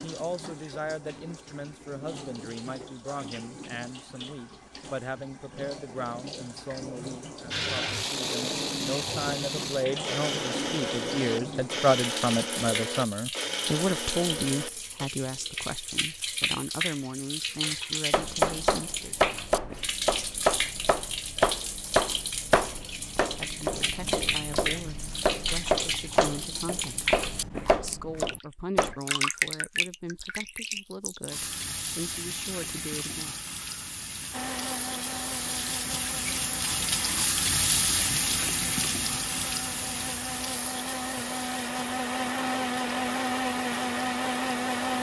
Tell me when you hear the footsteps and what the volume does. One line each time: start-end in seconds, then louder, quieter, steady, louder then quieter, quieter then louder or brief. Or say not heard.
not heard.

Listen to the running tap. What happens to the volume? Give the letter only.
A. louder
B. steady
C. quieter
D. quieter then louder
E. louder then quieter
A.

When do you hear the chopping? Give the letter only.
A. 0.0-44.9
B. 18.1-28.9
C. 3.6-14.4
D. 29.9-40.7
B.